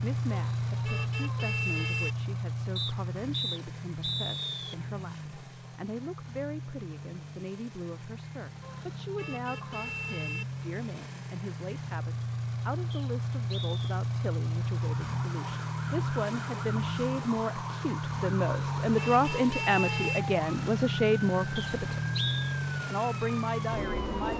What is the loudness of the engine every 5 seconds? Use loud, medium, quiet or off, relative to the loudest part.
loud, medium, loud, loud, loud.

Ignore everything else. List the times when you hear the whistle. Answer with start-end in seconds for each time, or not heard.
2.8-4.8, 12.9-13.8, 21.6-22.5.